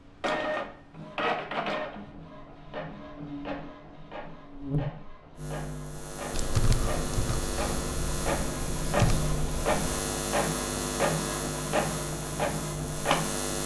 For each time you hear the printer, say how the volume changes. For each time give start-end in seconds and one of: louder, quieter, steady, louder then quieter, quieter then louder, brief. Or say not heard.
0.2-13.6 quieter then louder.